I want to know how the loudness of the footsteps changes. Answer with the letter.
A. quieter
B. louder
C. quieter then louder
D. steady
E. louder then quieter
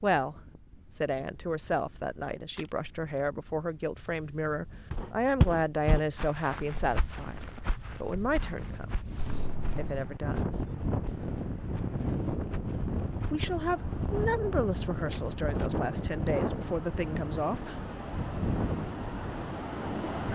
A.